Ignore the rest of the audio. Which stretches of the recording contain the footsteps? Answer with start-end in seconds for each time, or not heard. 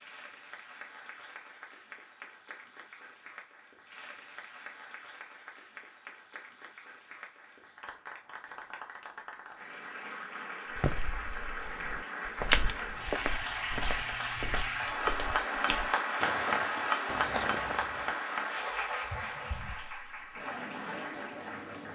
10.8-18.1.